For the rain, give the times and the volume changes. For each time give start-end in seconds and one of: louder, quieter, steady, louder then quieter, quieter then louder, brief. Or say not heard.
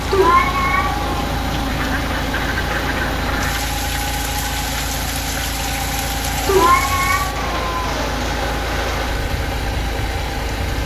0.0-10.8 steady.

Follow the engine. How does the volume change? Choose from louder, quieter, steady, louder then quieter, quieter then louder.
steady.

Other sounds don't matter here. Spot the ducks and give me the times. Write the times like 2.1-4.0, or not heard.
1.6-3.6.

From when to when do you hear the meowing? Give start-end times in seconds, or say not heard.
0.1-1.1, 6.5-8.1.